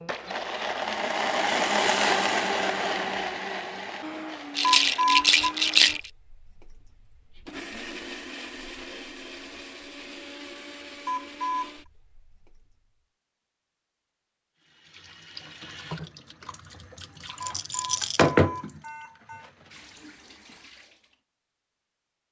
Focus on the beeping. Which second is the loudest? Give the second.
5 s.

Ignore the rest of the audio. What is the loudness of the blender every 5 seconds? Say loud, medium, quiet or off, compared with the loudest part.
loud, quiet, quiet, off, off.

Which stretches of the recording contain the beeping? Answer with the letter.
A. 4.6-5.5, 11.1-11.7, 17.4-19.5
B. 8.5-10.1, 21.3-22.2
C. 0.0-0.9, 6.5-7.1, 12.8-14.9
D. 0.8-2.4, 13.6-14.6
A.